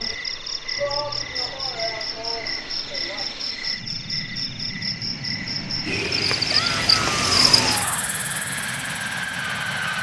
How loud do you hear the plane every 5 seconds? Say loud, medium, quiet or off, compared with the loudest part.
medium, loud.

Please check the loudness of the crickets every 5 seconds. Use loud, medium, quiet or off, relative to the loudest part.
medium, loud.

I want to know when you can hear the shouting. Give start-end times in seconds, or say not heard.
0.8-3.4, 6.5-8.1.